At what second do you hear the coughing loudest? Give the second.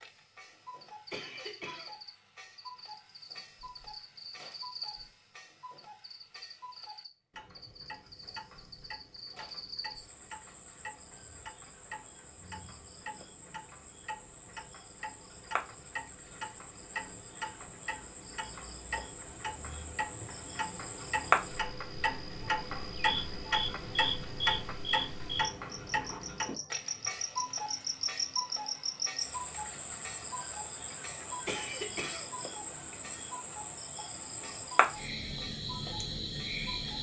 32 s.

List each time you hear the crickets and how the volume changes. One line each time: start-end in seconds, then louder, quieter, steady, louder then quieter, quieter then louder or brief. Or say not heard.
0.0-36.9 louder.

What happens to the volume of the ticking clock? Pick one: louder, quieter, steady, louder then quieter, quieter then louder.
louder then quieter.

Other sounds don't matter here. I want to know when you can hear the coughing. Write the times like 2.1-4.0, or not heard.
1.1-2.0, 31.4-32.4.